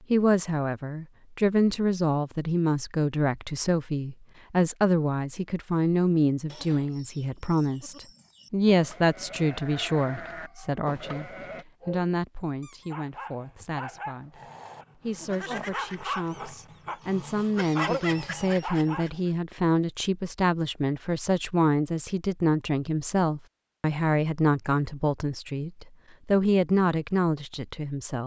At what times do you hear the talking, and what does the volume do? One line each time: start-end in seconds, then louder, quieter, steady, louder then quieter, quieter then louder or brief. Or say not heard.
0.1-28.2 quieter then louder.